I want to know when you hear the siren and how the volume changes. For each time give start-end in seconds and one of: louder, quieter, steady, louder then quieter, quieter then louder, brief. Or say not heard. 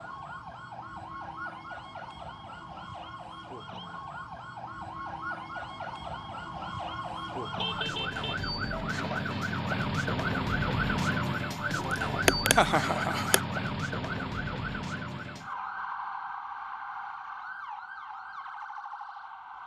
0.0-19.6 louder then quieter.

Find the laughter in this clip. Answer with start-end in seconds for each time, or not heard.
11.9-13.4.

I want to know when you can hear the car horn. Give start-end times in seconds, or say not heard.
7.5-8.9.